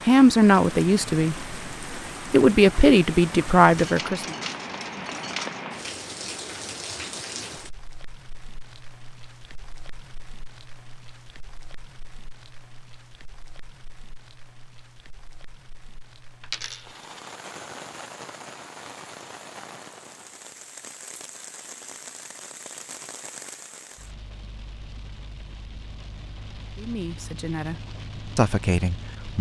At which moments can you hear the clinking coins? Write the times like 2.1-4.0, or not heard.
3.8-5.7, 16.4-17.4.